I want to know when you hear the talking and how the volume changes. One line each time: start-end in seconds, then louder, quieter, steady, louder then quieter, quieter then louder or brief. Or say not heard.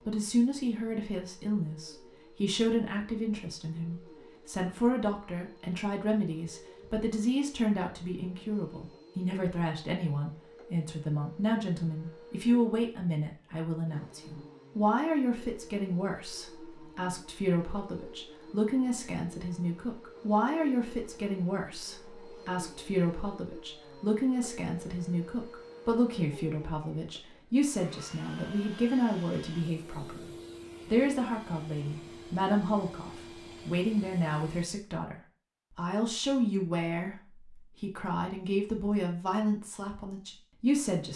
0.1-41.1 steady.